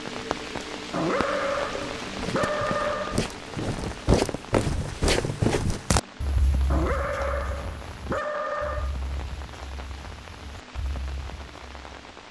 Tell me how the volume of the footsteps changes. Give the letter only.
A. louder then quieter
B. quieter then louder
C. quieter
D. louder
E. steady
A.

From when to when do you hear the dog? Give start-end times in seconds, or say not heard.
0.9-3.3, 6.7-8.9.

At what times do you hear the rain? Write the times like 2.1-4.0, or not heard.
0.0-12.2.